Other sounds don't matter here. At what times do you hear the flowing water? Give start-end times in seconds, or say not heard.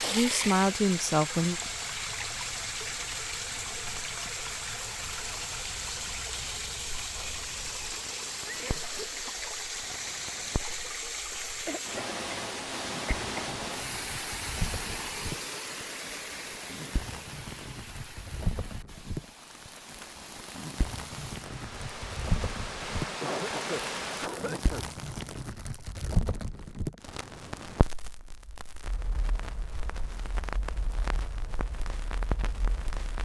0.0-24.3.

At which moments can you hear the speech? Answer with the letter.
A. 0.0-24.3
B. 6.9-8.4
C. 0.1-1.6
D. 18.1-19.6
C.